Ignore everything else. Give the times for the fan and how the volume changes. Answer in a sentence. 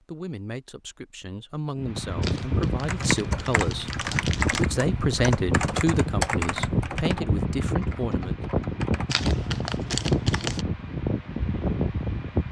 You can hear the fan from 1.8 to 12.4 s, at a steady volume.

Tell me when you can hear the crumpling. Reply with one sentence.
You can hear the crumpling from 2.2 to 4.7 s and from 9.1 to 10.7 s.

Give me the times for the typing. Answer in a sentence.
The typing can be heard from 2.8 to 9.2 s.